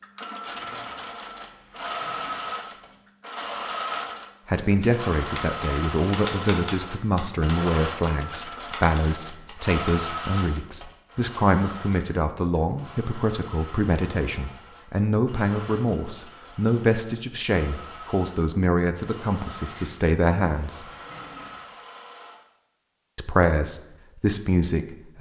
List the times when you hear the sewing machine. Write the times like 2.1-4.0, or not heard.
0.0-22.4.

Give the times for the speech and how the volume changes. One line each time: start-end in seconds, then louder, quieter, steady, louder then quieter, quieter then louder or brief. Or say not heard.
4.5-20.9 steady
23.1-25.1 brief.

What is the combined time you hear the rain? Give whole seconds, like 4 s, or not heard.
not heard.